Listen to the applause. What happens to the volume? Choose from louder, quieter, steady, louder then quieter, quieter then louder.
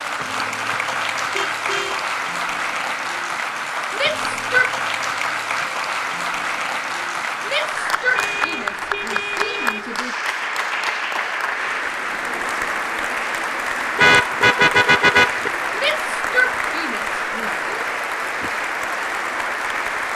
steady.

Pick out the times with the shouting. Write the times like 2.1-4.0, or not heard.
3.9-4.7, 7.5-10.2, 15.8-17.6.